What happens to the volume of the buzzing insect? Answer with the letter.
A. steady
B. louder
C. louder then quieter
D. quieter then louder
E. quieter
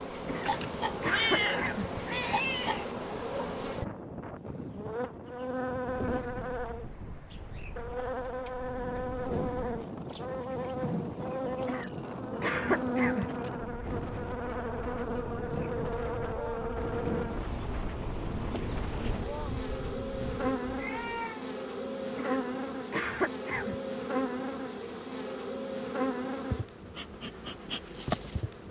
A.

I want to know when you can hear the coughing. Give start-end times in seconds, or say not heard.
0.2-1.9, 11.7-13.4, 22.1-23.8.